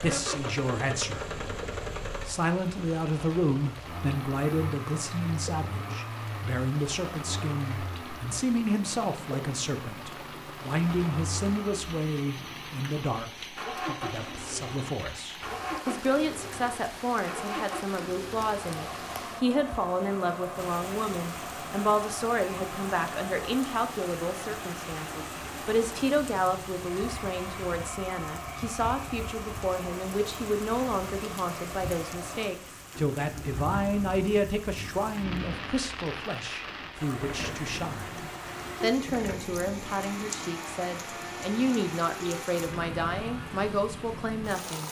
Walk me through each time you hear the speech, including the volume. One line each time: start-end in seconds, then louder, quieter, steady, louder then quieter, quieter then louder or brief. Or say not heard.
0.0-1.2 brief
2.2-44.8 steady.